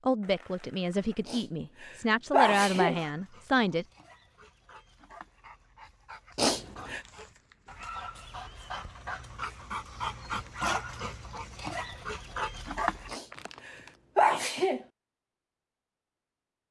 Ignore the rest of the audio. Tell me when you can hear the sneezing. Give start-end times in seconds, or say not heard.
1.2-3.0, 6.3-7.0, 13.1-14.8.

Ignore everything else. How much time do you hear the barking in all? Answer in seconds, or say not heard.
10 s.